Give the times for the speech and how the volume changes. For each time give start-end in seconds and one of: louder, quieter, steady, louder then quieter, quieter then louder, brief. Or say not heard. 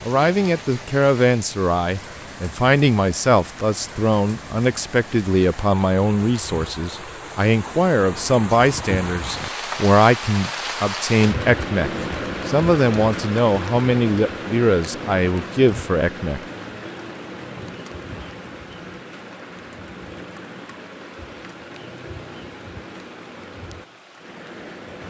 0.0-16.4 steady.